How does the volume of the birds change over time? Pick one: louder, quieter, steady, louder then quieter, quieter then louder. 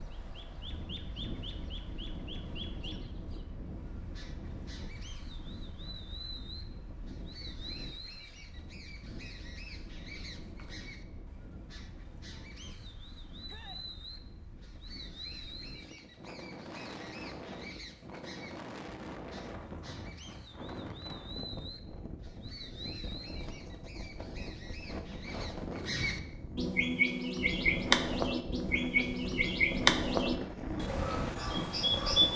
louder.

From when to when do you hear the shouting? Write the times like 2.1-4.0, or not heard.
13.4-13.8.